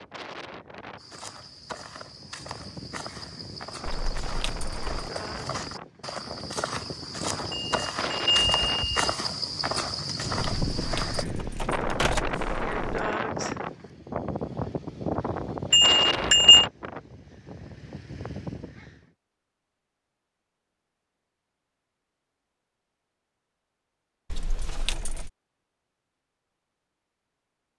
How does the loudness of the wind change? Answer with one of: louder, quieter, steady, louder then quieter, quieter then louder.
louder.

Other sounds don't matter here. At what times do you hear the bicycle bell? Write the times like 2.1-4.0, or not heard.
7.5-9.2, 15.7-16.6.